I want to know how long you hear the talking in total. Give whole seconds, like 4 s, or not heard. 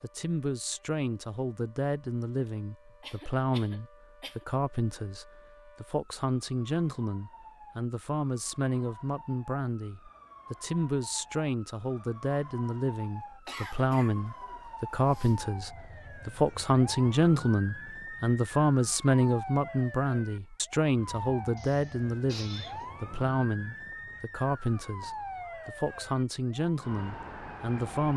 28 s.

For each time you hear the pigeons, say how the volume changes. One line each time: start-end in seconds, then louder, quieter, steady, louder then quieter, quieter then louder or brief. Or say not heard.
not heard.